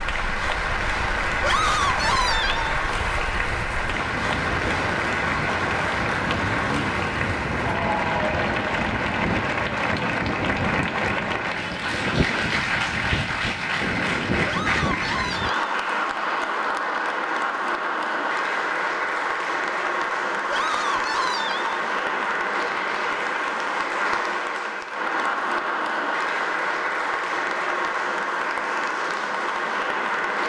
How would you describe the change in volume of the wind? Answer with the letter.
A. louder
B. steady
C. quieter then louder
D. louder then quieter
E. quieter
A.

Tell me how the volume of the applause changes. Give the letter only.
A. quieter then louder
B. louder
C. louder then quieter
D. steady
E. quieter
D.